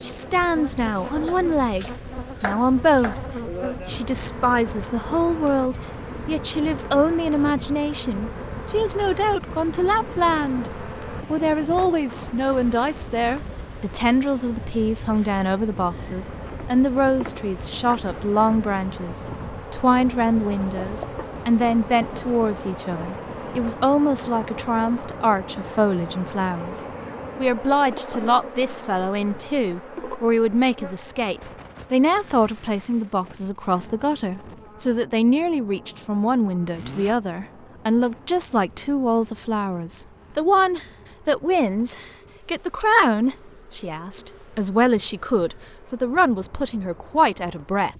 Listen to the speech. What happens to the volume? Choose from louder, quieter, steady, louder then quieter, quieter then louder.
steady.